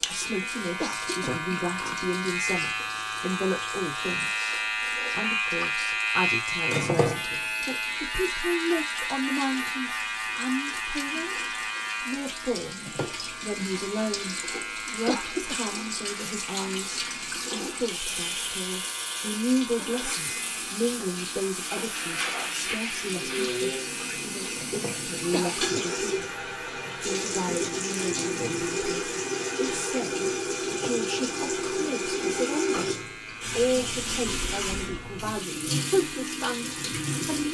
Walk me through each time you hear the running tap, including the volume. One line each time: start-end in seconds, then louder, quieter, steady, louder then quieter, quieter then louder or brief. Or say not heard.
0.0-37.5 louder.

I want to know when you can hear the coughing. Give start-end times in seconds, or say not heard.
0.8-1.4, 15.1-15.6, 25.3-25.9.